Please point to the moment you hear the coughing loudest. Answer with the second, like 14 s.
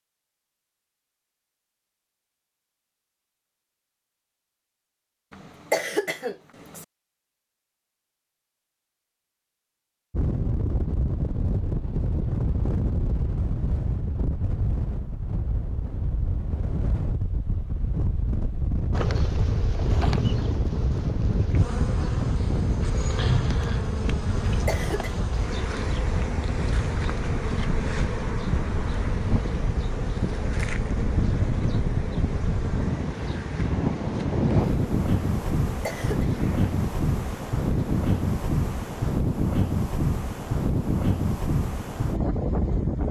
6 s.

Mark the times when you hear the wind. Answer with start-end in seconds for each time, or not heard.
10.1-43.0.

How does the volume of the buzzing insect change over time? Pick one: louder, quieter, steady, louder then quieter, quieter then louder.
quieter.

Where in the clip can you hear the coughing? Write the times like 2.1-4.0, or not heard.
5.3-6.8, 24.4-25.1, 35.6-36.2.